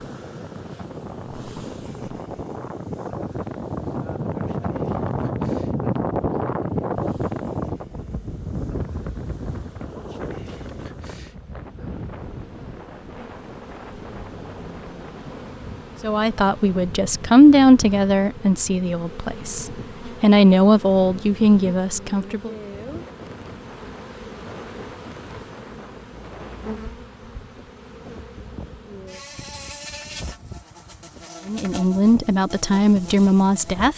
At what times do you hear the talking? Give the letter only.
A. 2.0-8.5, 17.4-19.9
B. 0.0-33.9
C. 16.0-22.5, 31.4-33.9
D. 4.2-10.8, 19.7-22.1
C.